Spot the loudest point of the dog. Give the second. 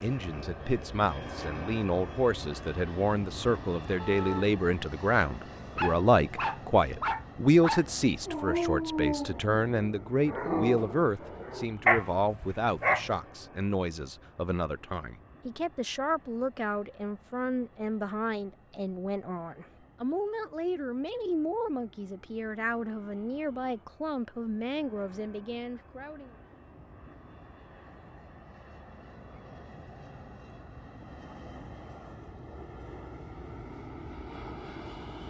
12 s.